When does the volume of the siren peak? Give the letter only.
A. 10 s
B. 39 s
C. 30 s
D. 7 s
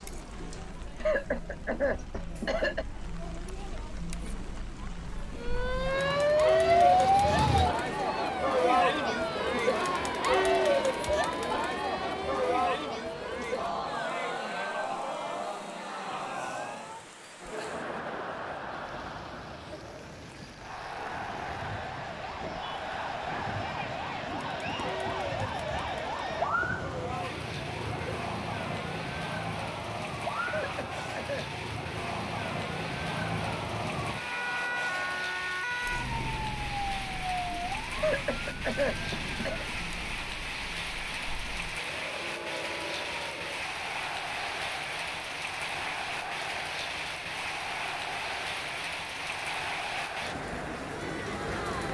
D.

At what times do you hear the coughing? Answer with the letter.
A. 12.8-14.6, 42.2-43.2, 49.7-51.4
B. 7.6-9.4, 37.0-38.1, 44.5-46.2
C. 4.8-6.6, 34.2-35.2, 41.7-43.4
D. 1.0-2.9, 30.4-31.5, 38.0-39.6
D.